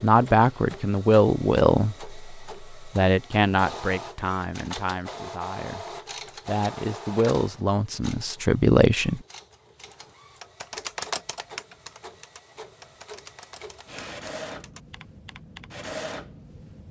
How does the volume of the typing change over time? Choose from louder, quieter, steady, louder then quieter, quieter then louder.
quieter.